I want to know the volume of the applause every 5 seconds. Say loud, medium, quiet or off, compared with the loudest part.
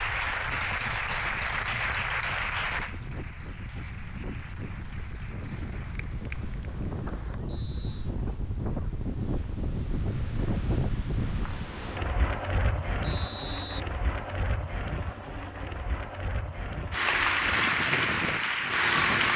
medium, quiet, off, loud.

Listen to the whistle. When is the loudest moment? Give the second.
13 s.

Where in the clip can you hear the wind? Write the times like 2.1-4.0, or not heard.
0.0-19.3.